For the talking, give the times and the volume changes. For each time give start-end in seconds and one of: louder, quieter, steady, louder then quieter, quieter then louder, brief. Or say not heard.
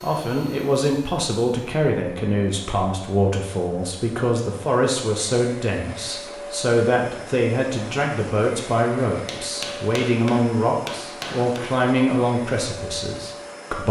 0.0-13.8 steady.